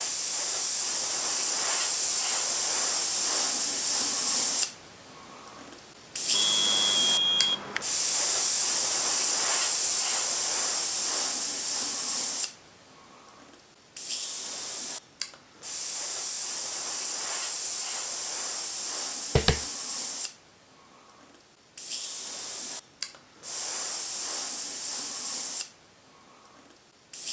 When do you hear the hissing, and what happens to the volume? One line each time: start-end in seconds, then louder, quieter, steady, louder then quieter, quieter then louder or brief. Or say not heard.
0.0-27.2 quieter.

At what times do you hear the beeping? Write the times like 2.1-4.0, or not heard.
6.3-7.8.